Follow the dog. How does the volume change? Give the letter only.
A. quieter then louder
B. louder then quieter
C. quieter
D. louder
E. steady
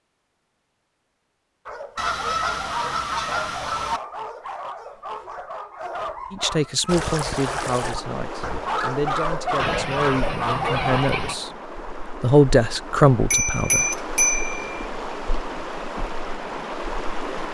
D.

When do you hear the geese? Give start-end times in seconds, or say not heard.
1.9-4.0, 9.6-11.3.